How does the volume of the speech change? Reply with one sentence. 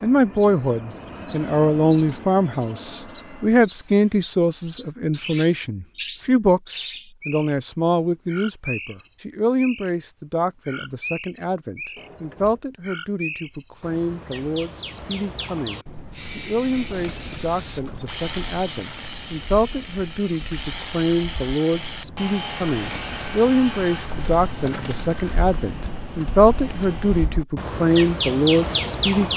The volume of the speech goes down, then up.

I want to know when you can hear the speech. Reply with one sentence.
The speech can be heard from 0.0 to 29.3 s.